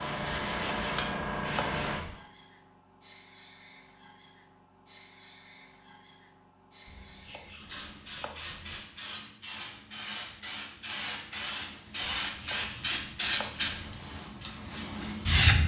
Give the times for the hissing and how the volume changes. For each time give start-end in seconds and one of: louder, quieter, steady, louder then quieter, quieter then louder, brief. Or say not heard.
0.0-15.6 quieter then louder.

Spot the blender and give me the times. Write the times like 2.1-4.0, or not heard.
not heard.